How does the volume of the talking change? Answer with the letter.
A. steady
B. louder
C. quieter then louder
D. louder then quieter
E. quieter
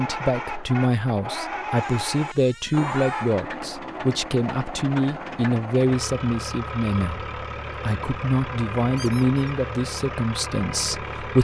A.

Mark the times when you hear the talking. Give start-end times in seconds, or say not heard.
0.0-11.3.